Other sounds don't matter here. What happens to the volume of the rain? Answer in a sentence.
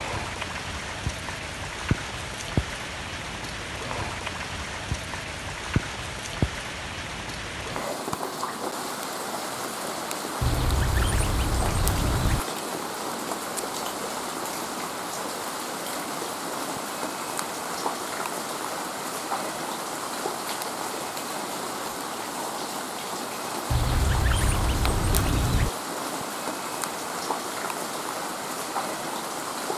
The volume of the rain stays about the same.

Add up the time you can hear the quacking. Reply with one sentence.
The quacking can be heard for 4 seconds in total.